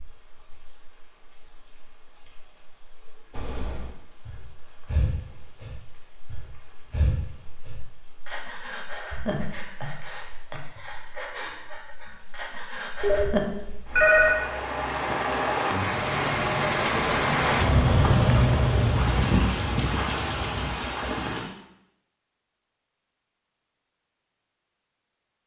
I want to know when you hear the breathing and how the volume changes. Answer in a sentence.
You can hear the breathing from 3.3 to 13.4 s, at a steady volume.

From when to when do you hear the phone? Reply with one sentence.
You can hear the phone from 13.0 to 14.4 s.